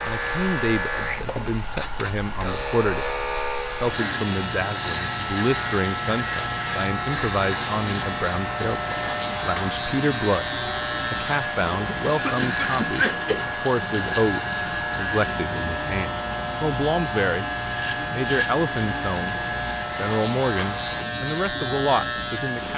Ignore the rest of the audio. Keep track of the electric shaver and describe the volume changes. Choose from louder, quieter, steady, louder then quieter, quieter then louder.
steady.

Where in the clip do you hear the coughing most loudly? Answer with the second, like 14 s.
13 s.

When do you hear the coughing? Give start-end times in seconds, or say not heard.
11.8-13.4.